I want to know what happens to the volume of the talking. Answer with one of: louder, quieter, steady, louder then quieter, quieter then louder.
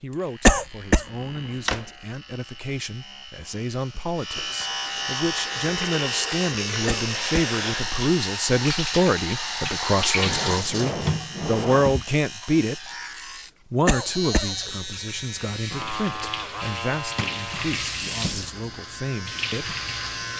louder then quieter.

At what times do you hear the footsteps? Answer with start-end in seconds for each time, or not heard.
not heard.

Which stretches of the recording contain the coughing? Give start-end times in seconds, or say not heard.
0.5-1.1, 6.8-7.5, 13.8-14.6.